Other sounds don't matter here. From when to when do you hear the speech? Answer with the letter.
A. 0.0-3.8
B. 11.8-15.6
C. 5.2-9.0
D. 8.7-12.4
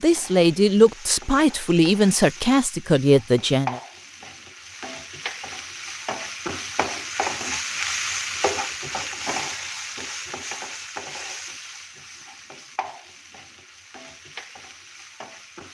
A.